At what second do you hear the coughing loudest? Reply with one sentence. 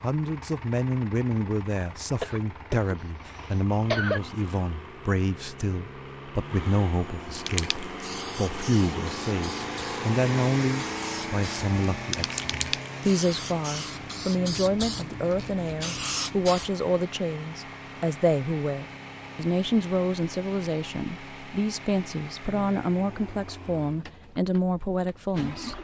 The loudest moment of the coughing is at 4 seconds.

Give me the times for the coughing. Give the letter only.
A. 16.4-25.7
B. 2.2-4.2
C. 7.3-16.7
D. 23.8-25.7
B.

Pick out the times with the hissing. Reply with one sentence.
You can hear the hissing from 7.3 to 16.7 s.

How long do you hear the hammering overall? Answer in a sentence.
The hammering can't be heard in this clip.